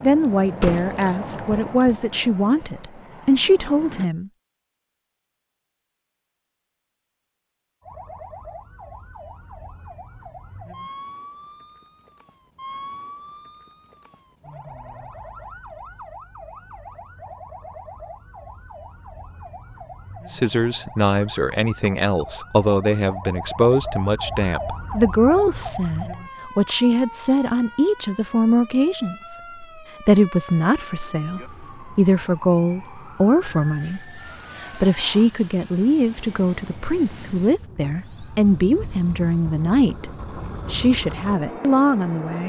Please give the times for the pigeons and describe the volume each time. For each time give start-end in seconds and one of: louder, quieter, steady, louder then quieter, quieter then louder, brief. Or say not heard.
not heard.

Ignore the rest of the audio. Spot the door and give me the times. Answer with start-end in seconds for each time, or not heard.
0.6-2.0.